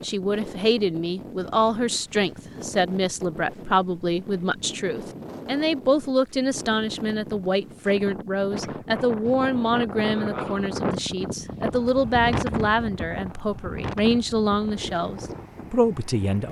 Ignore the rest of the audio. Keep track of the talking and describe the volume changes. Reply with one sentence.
The loudness of the talking stays about the same.